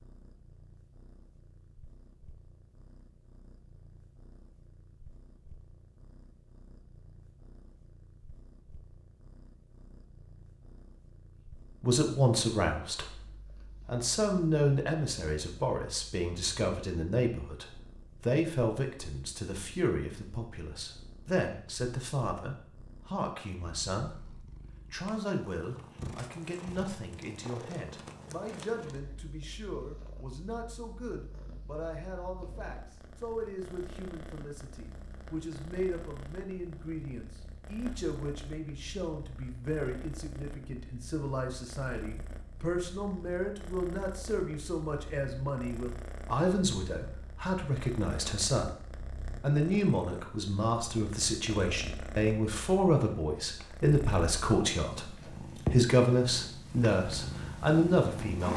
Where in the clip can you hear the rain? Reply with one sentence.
The rain can't be heard in this clip.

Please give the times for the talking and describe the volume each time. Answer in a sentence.
The talking can be heard from 11.8 to 58.5 s, getting quieter then louder.